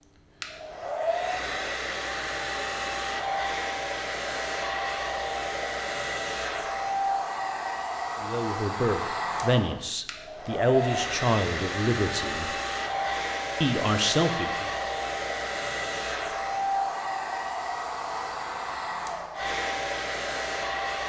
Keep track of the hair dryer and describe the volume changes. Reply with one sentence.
The loudness of the hair dryer stays about the same.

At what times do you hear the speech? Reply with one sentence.
The speech can be heard from 8.2 to 12.6 s and from 13.6 to 14.7 s.